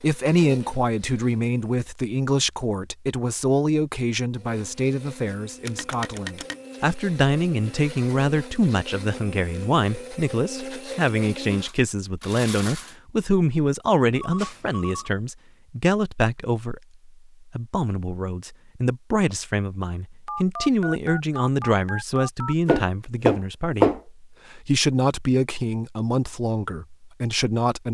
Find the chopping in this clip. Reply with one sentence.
You can hear the chopping from 22.6 to 24.0 s.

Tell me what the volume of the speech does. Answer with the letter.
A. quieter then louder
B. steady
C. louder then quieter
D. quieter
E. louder
B.